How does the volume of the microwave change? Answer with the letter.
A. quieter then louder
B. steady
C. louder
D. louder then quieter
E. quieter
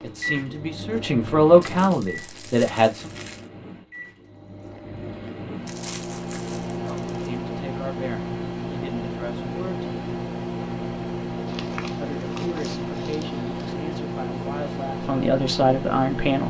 C.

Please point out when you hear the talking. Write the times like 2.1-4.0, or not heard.
0.0-3.1, 6.8-9.8, 12.0-16.4.